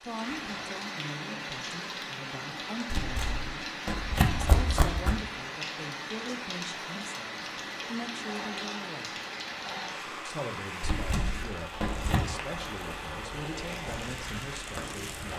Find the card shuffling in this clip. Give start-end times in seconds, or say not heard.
2.9-5.2, 10.8-12.2.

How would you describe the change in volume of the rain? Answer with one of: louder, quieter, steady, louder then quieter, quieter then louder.
steady.